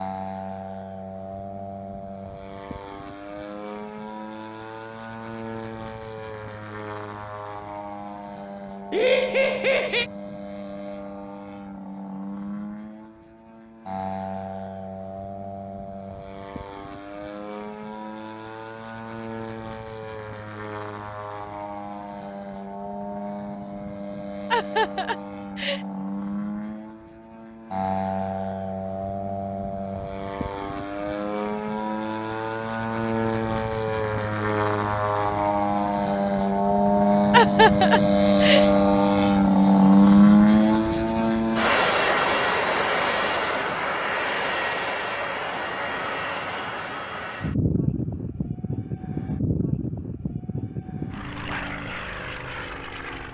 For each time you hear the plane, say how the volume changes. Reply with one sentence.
You can hear the plane from 0.0 to 53.3 s, getting louder then quieter.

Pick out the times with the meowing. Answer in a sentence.
You can't hear the meowing here.